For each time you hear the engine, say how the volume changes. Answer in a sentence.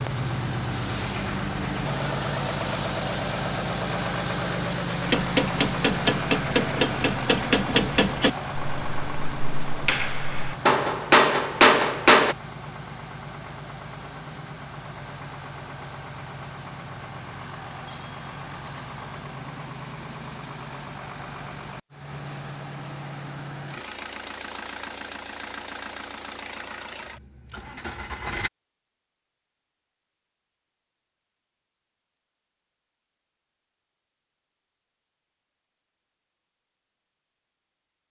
The engine can be heard from 0.0 to 28.5 s, getting quieter.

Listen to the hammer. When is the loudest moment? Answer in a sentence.
The volume of the hammer peaks at 12 seconds.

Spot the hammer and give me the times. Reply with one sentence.
The hammer can be heard from 5.0 to 12.3 s.